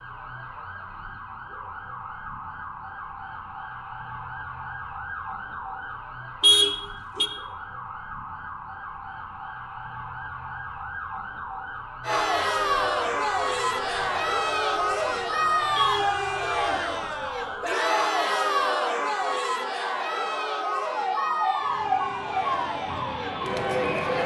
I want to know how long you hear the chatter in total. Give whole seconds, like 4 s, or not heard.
12 s.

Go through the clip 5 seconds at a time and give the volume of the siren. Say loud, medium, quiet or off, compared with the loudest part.
medium, medium, medium, medium, loud.